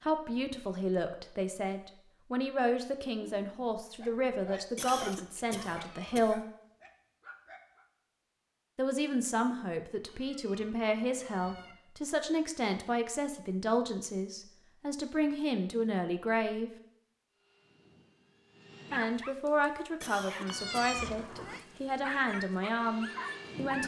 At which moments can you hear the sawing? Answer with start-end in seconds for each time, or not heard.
not heard.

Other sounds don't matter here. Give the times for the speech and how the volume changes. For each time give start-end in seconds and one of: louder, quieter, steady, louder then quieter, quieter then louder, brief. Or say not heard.
0.0-6.5 steady
8.8-16.7 steady
18.9-23.8 quieter then louder.